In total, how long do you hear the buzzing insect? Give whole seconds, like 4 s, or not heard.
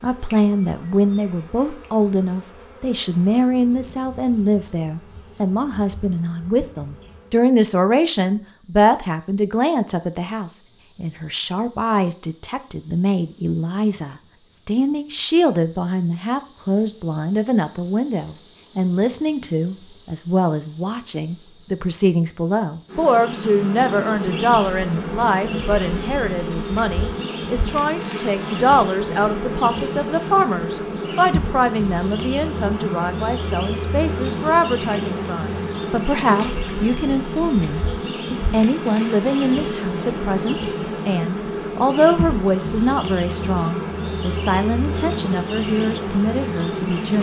47 s.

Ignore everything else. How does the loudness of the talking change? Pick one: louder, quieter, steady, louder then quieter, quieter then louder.
steady.